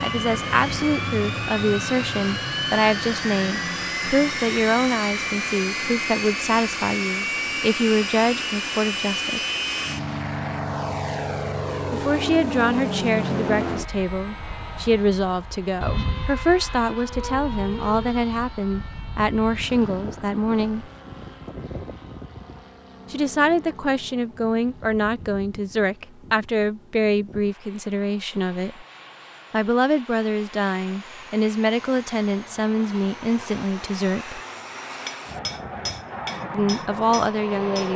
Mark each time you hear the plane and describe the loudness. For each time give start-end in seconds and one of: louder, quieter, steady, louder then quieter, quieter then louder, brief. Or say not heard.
0.0-37.9 quieter then louder.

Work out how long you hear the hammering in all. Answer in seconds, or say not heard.
3 s.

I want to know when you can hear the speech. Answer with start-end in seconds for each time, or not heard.
0.0-9.4, 11.9-20.9, 23.1-28.9, 29.5-34.4, 36.5-37.9.